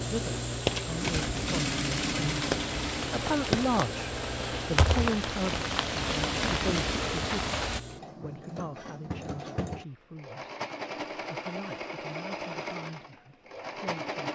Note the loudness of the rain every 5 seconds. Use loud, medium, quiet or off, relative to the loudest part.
loud, loud, off.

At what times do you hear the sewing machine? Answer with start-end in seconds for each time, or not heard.
0.0-14.3.